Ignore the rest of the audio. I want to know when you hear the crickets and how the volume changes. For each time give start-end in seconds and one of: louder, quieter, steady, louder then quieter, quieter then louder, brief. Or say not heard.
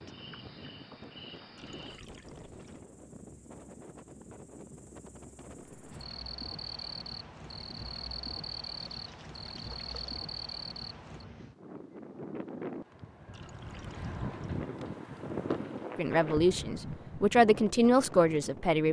0.0-11.2 quieter then louder.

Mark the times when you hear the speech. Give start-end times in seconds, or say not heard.
15.9-18.8.